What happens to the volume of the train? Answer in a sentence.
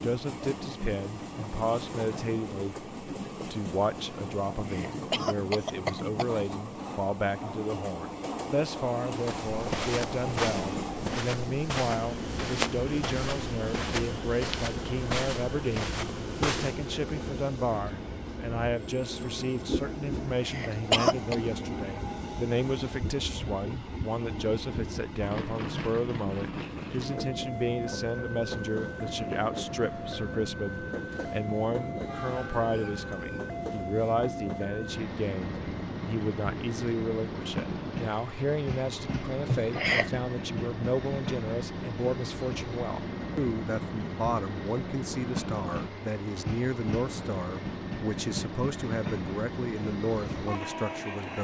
The volume of the train stays about the same.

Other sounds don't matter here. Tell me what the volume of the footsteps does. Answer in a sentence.
The volume of the footsteps stays about the same.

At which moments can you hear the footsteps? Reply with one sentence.
You can hear the footsteps from 9.2 to 16.9 s.